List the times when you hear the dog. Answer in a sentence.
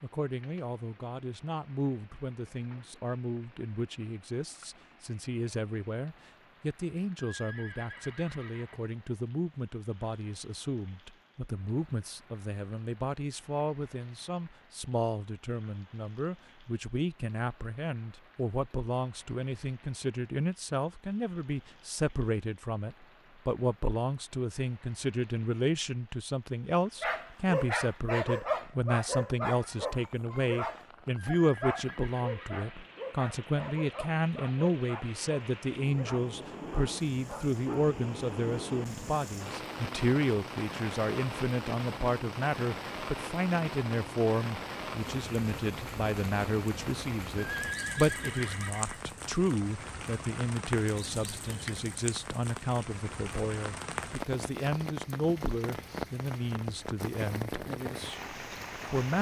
The dog can be heard from 27.0 to 37.9 s.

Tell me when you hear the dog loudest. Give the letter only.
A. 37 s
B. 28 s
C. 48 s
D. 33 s
B.